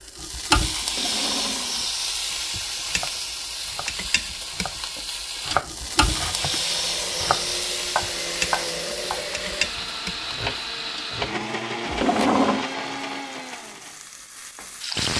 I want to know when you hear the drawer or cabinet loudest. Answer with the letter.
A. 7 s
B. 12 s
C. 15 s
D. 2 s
B.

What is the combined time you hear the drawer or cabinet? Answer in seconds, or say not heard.
3 s.